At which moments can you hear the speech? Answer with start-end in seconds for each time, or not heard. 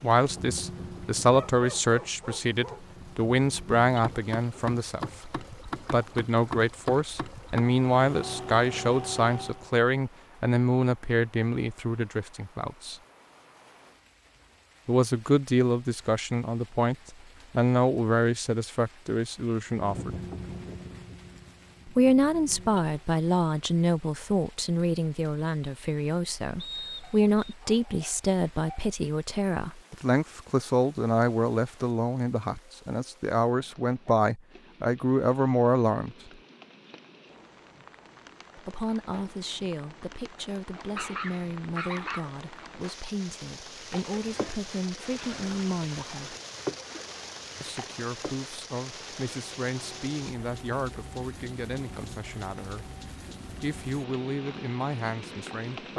0.0-12.9, 14.8-20.1, 21.9-36.1, 38.5-46.4, 47.6-52.9, 53.6-55.9.